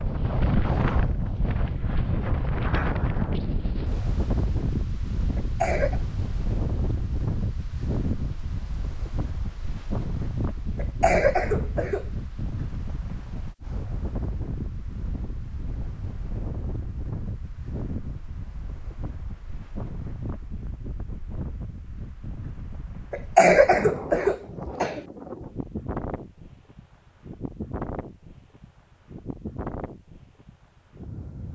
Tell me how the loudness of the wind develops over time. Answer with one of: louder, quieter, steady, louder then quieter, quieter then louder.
quieter.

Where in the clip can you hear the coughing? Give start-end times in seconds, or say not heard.
5.3-6.0, 10.8-12.1, 23.1-25.0.